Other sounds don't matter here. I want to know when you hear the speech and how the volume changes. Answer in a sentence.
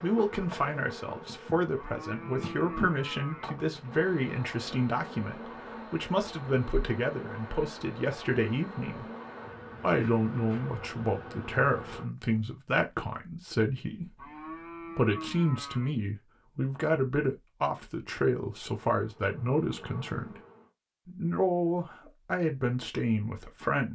You can hear the speech from 0.0 to 9.1 s, at a steady volume; from 9.8 to 20.4 s, at a steady volume; and briefly from 21.1 to 23.9 s.